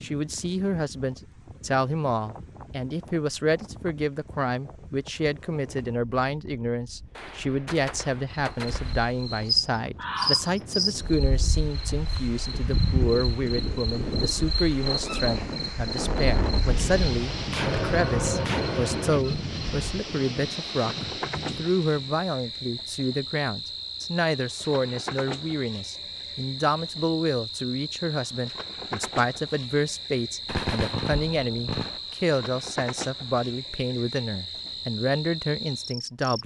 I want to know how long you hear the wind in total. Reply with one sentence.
The wind can be heard for 22 seconds in total.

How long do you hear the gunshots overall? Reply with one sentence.
The gunshots can be heard for 5 seconds in total.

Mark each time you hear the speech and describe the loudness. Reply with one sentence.
The speech can be heard from 0.0 to 36.4 s, at a steady volume.